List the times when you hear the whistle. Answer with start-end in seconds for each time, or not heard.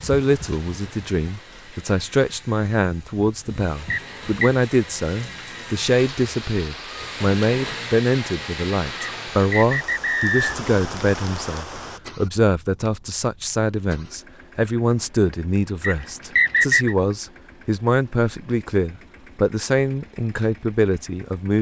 3.9-4.5, 9.0-10.6, 15.8-16.9.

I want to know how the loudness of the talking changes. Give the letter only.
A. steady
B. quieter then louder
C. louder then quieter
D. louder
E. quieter
A.